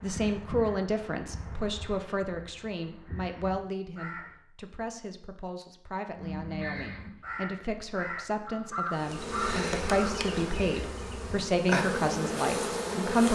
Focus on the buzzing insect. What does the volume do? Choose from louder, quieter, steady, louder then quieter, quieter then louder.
quieter then louder.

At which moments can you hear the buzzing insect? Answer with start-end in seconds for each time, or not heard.
8.9-13.3.